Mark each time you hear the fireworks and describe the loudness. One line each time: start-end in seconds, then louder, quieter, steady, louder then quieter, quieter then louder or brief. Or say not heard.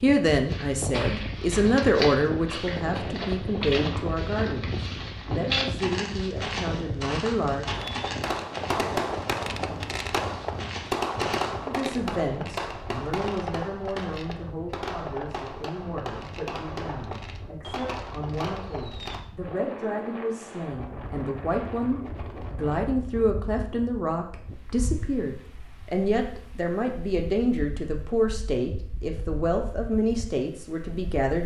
7.7-19.2 quieter.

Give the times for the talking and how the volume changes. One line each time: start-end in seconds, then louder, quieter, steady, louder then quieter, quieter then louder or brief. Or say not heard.
0.0-7.7 quieter
11.7-31.4 louder.